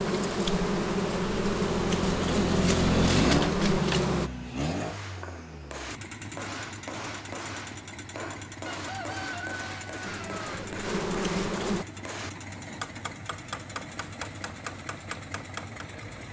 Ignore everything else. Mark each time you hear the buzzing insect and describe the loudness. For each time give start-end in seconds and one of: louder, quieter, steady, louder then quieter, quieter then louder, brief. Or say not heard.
0.0-4.3 steady
10.1-11.8 brief.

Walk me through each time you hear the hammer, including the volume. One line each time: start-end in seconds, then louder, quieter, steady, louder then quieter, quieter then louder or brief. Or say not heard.
4.7-16.1 steady.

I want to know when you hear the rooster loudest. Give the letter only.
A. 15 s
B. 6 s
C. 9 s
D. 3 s
C.